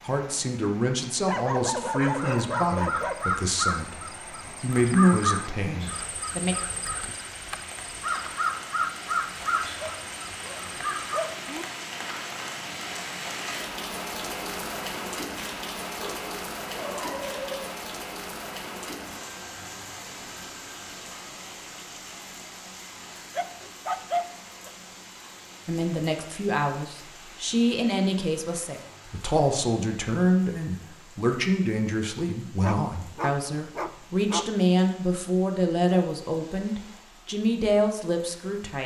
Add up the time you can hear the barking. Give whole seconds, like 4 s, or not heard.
9 s.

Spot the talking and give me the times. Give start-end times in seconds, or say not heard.
0.0-6.5, 25.6-38.8.